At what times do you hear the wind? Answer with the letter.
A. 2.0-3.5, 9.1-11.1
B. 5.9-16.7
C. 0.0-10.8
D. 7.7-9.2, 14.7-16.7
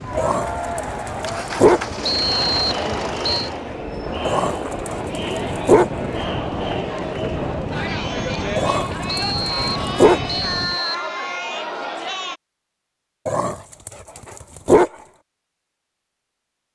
C.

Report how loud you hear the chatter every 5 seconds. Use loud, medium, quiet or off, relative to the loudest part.
loud, loud, loud, off.